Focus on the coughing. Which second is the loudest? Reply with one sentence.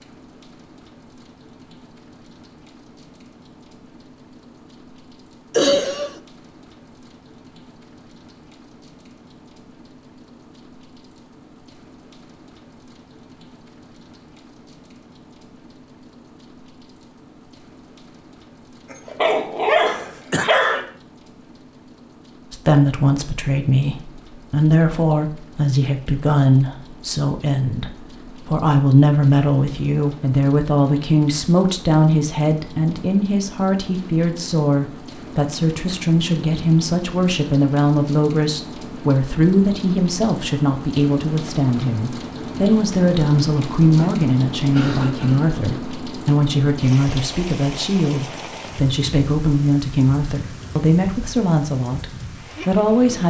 The loudest moment of the coughing is at 6 seconds.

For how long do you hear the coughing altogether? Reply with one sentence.
You can hear the coughing for 3 seconds altogether.